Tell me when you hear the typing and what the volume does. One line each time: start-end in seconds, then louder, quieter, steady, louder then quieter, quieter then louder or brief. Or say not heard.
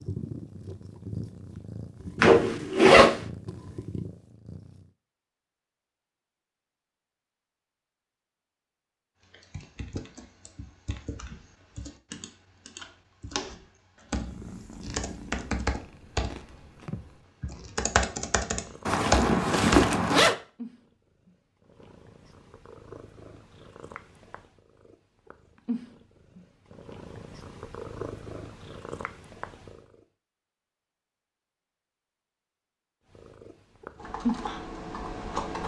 9.3-19.9 louder
34.0-35.6 brief.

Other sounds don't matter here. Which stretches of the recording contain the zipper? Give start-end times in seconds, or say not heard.
2.2-3.2, 18.9-20.4.